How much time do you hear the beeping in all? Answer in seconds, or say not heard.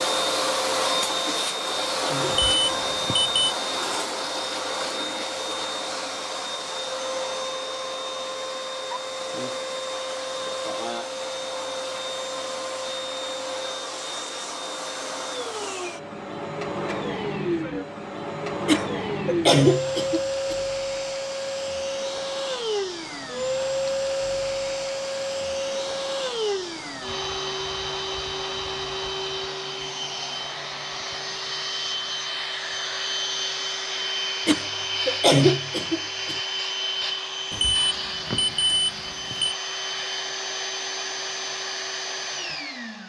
3 s.